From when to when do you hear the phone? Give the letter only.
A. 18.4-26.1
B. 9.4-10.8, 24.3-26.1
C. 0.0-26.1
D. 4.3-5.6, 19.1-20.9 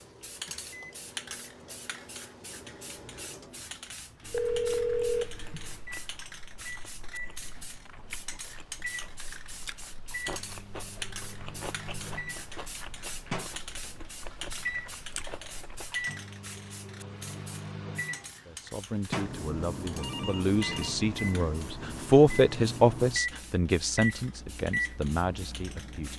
D.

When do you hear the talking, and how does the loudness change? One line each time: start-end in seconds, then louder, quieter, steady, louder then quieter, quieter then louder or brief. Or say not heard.
18.4-26.1 louder then quieter.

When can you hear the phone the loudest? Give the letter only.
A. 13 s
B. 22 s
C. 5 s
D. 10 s
C.